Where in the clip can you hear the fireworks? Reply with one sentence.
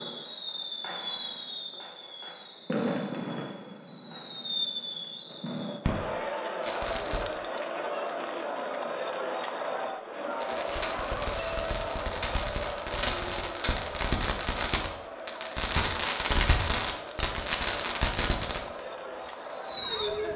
You can hear the fireworks from 0.0 to 7.2 s and from 10.4 to 20.1 s.